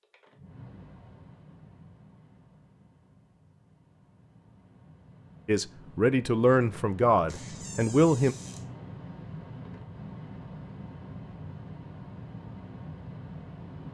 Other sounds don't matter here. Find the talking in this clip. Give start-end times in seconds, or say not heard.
5.5-8.3.